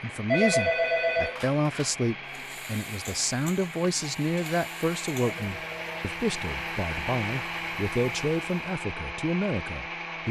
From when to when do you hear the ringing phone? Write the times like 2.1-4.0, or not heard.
0.3-1.9, 5.2-6.2.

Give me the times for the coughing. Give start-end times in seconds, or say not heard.
not heard.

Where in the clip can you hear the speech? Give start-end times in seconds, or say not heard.
0.0-10.2.